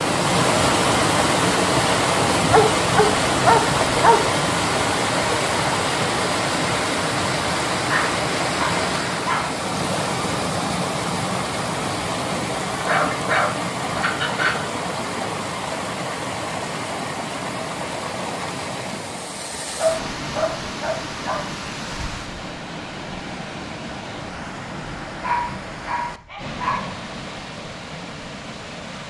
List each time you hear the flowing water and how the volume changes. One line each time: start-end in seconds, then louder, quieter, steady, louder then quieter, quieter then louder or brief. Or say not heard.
0.0-29.0 quieter.